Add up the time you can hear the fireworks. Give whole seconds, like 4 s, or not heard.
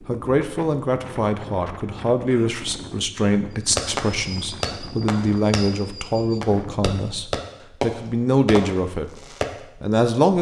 6 s.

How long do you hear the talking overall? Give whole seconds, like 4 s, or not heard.
10 s.